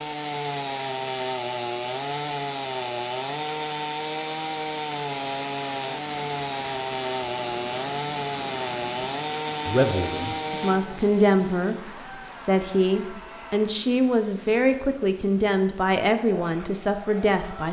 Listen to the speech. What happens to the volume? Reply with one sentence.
The loudness of the speech stays about the same.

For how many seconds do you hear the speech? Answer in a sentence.
You can hear the speech for 8 seconds altogether.